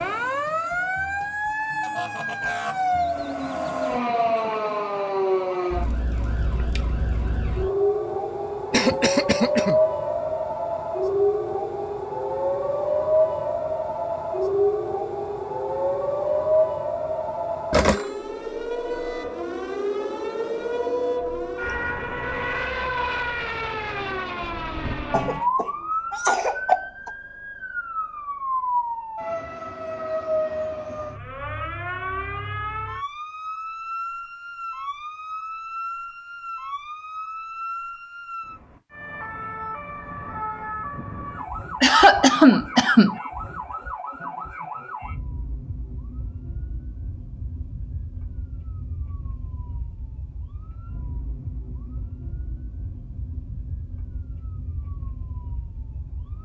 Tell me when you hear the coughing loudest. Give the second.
42 s.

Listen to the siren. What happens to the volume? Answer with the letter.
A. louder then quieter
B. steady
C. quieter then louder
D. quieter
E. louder
D.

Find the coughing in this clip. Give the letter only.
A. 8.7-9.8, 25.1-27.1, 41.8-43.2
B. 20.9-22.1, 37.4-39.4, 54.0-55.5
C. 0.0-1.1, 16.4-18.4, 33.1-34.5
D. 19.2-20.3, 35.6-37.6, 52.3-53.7
A.